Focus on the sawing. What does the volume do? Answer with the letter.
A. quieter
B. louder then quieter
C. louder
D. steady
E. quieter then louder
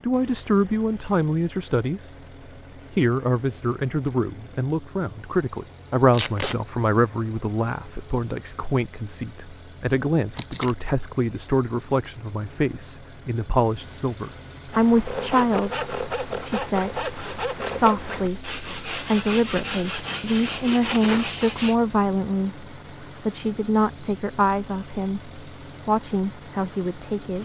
D.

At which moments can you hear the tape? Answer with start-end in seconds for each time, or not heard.
6.1-6.5, 10.3-10.8, 20.4-21.2.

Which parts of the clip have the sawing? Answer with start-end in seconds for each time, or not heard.
14.7-21.8.